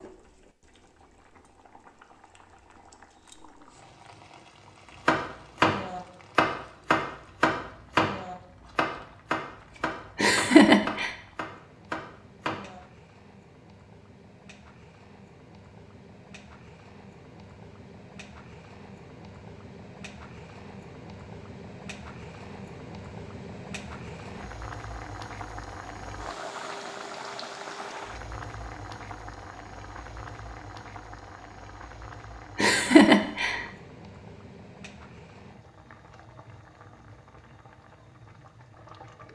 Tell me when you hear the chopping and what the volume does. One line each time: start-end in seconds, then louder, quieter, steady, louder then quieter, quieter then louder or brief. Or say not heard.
5.0-12.8 quieter.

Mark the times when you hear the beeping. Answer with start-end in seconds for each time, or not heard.
not heard.